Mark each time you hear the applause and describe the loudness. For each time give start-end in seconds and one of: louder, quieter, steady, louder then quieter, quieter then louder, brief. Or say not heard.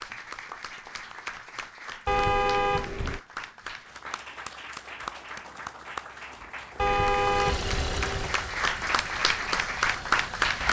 0.0-10.6 louder.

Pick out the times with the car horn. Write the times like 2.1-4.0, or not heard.
2.0-3.2, 6.8-8.3.